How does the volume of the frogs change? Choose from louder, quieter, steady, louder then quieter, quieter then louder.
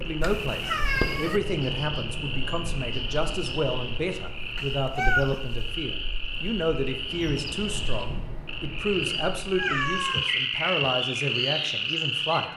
louder.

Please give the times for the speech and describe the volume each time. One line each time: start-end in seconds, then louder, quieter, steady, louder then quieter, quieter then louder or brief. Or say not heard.
0.0-12.5 steady.